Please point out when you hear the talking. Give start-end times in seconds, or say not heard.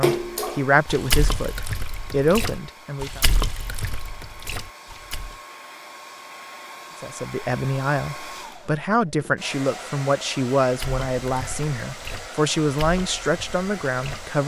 0.0-3.2, 7.0-14.4.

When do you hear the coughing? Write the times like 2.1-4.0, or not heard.
not heard.